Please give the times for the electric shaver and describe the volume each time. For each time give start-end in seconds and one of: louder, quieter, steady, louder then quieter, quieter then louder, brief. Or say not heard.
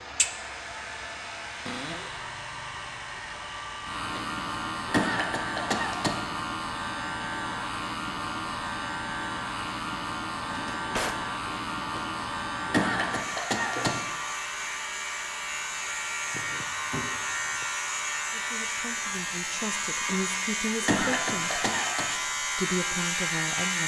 0.0-23.8 louder.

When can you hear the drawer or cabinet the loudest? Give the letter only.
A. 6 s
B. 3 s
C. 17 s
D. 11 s
D.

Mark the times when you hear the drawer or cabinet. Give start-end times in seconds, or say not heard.
1.6-2.3, 10.4-11.2, 16.3-17.6.